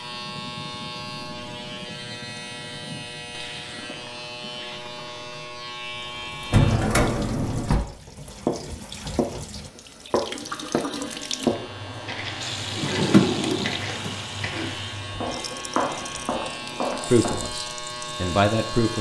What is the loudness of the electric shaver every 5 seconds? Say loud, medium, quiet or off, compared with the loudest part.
loud, loud, medium, loud.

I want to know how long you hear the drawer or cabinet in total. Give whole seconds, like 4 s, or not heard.
3 s.